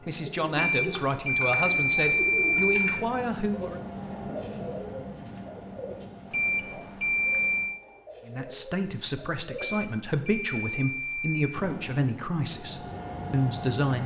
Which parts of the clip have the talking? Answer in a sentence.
The talking can be heard from 0.1 to 3.8 s and from 8.2 to 14.0 s.